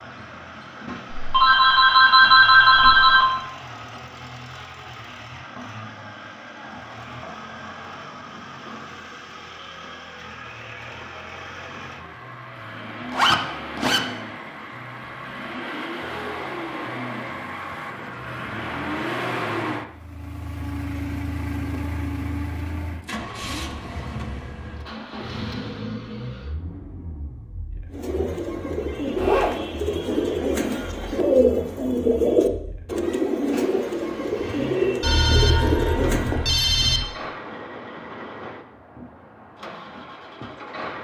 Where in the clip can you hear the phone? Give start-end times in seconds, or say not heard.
1.1-3.2, 35.0-37.0.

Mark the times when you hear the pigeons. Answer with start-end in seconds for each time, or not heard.
27.9-36.4.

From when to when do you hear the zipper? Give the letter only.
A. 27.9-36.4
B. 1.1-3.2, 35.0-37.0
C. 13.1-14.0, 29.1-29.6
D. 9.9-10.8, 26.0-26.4
C.